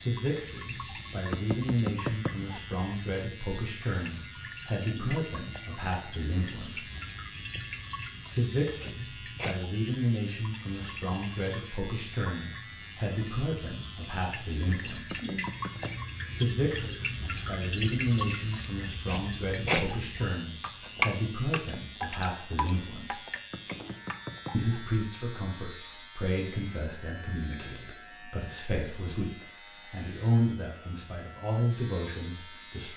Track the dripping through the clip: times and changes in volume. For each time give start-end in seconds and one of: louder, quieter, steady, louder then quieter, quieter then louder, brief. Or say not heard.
0.0-24.7 louder.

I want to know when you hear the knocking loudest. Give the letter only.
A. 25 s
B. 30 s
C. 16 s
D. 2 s
D.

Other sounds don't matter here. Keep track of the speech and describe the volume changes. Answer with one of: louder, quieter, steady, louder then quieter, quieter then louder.
steady.